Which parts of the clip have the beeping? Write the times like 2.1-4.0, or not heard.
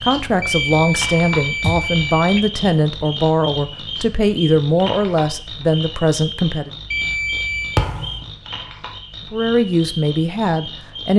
0.4-2.5, 6.9-7.8.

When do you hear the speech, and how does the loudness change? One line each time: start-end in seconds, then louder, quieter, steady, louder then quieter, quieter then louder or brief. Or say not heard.
0.0-6.7 steady
9.3-11.1 brief.